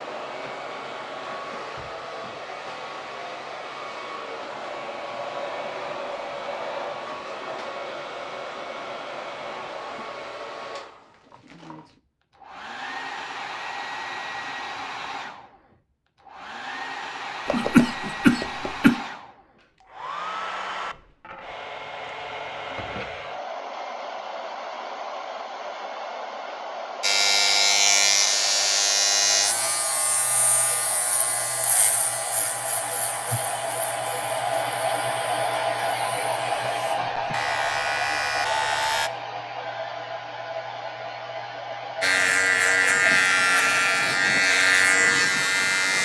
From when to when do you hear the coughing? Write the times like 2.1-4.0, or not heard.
17.4-18.9.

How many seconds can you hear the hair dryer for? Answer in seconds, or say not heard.
46 s.